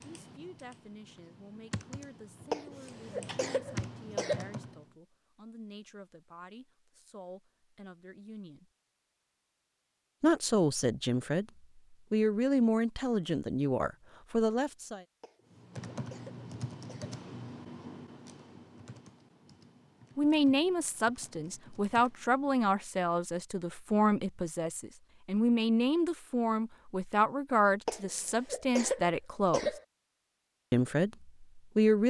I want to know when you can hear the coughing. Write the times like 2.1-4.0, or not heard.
2.5-4.5, 15.2-17.2, 27.9-29.8.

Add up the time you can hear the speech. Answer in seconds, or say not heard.
24 s.